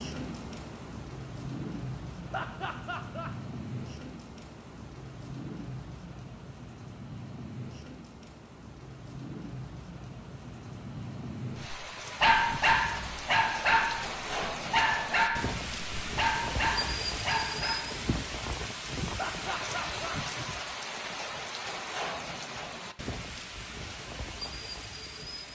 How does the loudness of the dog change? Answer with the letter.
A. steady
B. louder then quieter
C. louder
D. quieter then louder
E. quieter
E.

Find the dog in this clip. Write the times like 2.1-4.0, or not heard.
11.7-17.9.